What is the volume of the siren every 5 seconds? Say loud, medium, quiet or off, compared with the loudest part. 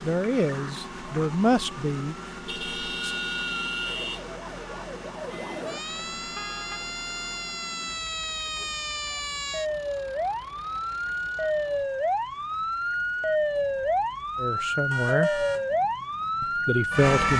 quiet, medium, loud, loud.